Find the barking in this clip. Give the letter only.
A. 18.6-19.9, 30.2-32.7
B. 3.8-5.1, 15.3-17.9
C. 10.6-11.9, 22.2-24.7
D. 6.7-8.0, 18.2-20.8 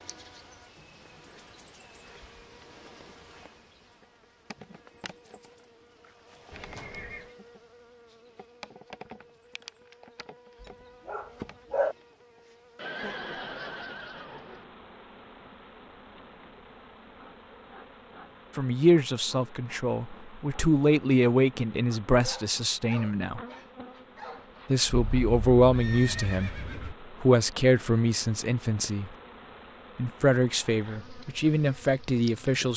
C.